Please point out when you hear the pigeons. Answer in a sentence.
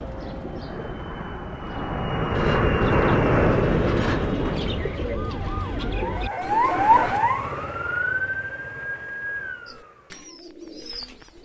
The pigeons can be heard from 0.0 to 7.2 s and from 9.7 to 11.4 s.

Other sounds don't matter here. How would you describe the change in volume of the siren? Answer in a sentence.
The loudness of the siren goes up, then down.